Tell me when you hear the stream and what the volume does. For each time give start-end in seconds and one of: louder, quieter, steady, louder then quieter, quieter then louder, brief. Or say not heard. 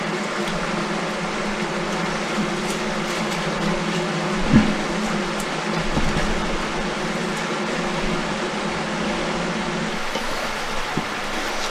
0.0-11.6 steady.